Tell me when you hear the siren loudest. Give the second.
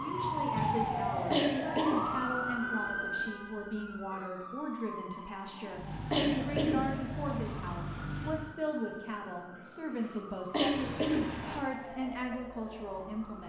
1 s.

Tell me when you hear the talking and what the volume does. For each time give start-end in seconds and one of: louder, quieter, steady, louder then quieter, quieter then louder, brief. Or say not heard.
0.0-13.4 steady.